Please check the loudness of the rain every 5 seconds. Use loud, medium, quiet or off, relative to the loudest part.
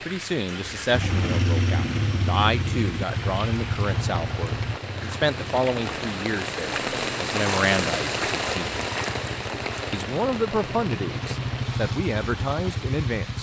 medium, loud, medium.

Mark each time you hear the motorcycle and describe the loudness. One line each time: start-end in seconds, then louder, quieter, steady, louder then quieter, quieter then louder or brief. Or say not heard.
0.0-13.3 quieter then louder.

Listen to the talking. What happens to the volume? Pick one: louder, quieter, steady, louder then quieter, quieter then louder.
steady.